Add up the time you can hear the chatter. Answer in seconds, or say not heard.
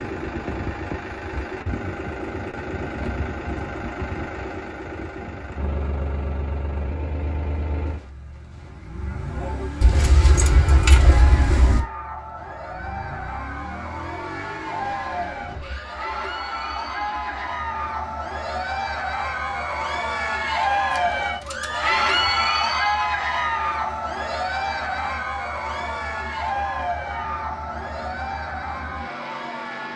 21 s.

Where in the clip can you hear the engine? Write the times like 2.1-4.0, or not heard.
0.0-29.9.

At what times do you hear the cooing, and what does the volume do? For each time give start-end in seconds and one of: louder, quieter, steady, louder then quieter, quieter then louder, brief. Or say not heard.
not heard.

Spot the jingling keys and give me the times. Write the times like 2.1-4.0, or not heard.
9.8-11.8, 20.9-22.5.